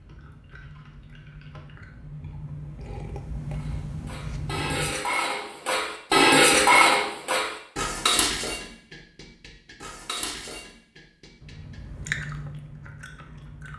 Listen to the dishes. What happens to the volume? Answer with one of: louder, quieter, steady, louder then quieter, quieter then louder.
louder then quieter.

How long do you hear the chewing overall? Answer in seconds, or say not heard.
7 s.